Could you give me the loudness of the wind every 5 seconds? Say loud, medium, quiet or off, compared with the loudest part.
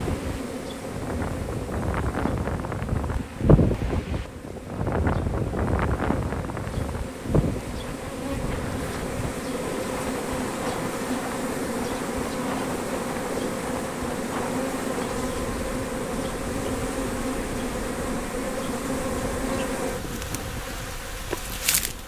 loud, loud, medium, quiet, quiet.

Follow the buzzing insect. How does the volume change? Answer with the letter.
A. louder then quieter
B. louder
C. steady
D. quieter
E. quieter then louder
B.